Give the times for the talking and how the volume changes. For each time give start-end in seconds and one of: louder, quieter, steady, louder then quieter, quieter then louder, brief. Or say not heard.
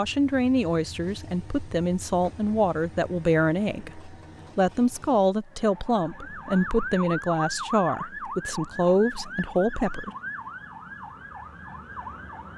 0.0-10.1 steady.